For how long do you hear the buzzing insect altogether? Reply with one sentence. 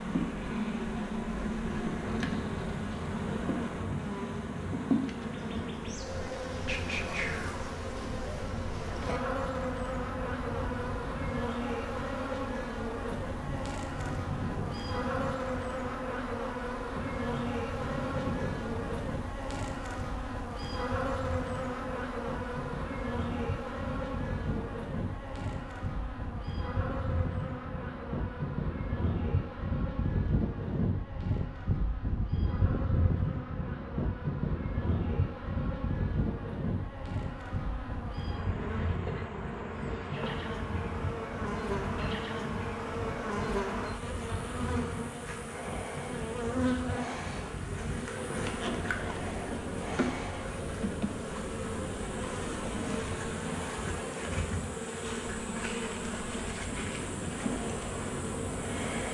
The buzzing insect can be heard for 59 seconds in total.